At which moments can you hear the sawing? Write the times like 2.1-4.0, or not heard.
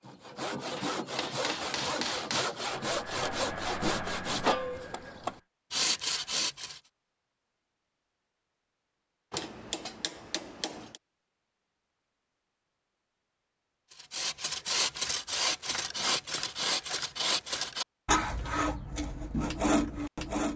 0.0-6.8, 13.9-20.5.